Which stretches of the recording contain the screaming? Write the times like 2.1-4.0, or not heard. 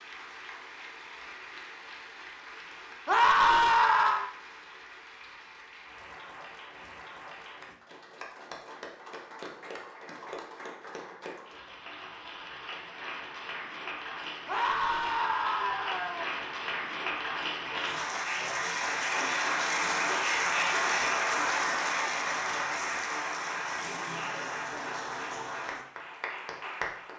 3.0-4.3, 14.4-16.3.